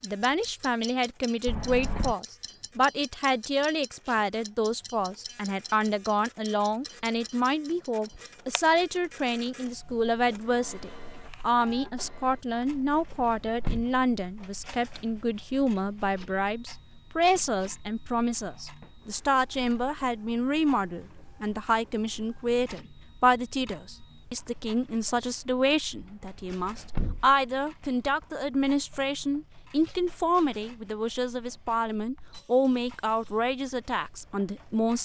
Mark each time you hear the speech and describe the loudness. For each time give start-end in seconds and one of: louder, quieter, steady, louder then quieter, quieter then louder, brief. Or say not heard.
0.0-35.0 steady.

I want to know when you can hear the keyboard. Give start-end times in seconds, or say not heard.
not heard.